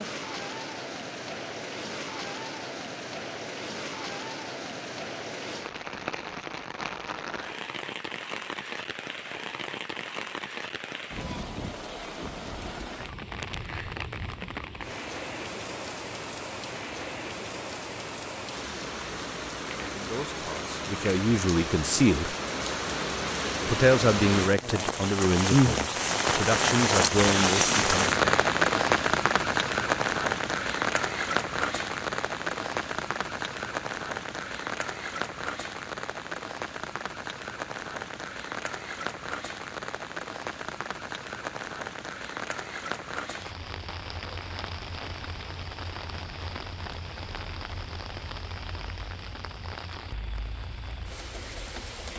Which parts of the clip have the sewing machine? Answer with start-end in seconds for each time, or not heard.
not heard.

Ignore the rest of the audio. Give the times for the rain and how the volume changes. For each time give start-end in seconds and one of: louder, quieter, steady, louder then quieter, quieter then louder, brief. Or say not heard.
0.0-52.1 louder then quieter.